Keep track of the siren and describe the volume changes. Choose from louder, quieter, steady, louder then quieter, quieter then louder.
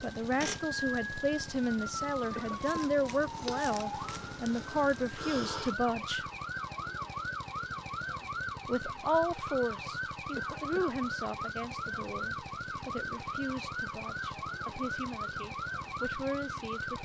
steady.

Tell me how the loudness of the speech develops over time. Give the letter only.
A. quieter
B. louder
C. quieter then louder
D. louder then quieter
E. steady
A.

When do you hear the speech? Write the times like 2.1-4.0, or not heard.
0.0-6.2, 8.7-17.0.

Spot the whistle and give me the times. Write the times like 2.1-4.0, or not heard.
not heard.